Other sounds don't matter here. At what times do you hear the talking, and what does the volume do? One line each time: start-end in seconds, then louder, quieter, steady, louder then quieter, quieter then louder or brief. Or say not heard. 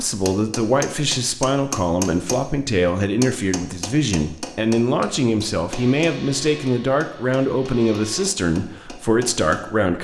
0.0-9.9 steady.